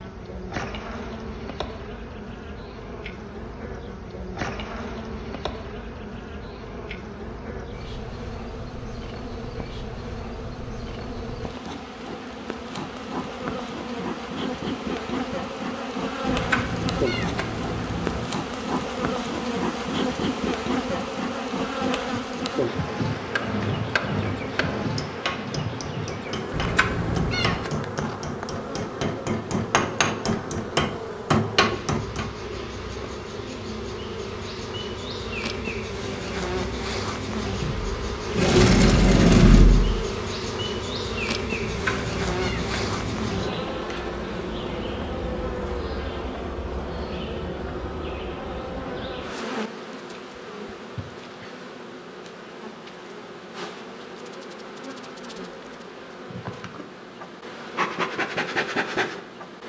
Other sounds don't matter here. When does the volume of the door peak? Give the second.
39 s.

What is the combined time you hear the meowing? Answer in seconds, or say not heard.
5 s.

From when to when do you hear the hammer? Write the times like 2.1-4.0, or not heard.
23.2-32.3.